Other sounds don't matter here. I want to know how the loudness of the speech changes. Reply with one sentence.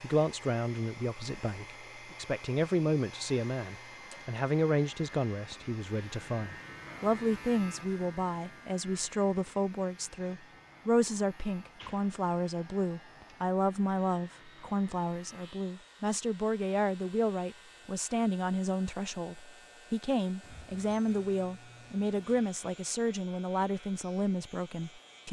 The volume of the speech stays about the same.